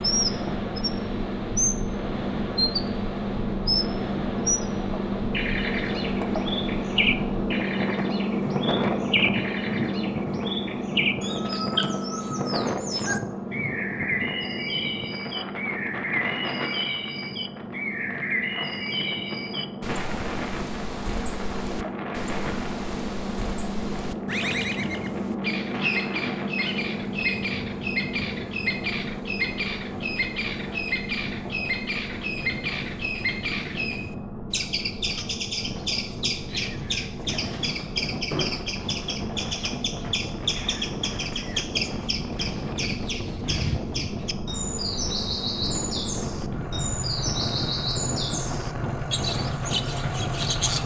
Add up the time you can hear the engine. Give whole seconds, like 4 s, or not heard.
51 s.